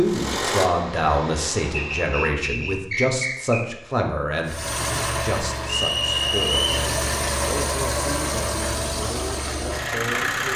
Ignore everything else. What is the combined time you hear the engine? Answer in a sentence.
The engine can be heard for 8 seconds in total.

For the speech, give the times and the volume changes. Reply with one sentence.
The speech can be heard from 0.0 to 10.5 s, getting quieter.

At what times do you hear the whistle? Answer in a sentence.
You can hear the whistle from 1.7 to 3.6 s and from 5.7 to 6.7 s.